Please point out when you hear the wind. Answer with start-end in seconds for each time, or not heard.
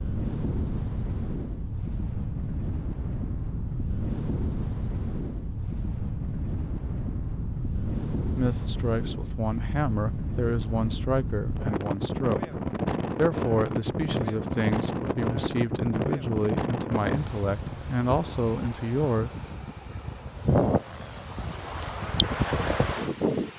0.0-23.5.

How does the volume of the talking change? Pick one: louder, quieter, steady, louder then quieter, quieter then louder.
steady.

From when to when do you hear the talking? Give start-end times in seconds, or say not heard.
8.3-19.3.